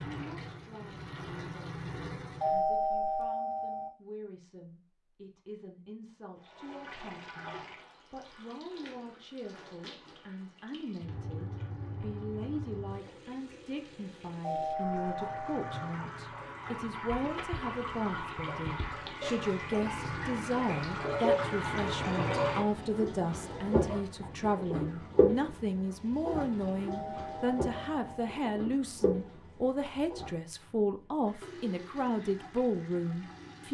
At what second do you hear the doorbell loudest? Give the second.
3 s.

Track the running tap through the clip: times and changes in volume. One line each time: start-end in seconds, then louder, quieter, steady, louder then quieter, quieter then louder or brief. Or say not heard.
0.0-2.6 brief
6.3-33.6 louder then quieter.